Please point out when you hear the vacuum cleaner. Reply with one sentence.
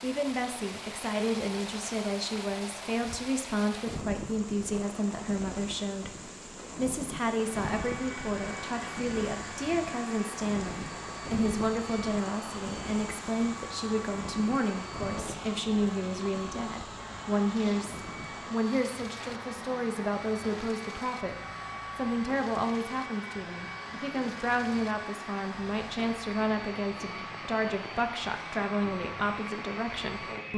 You can hear the vacuum cleaner from 7.2 to 30.5 s.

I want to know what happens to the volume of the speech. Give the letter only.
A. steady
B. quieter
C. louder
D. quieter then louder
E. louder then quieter
A.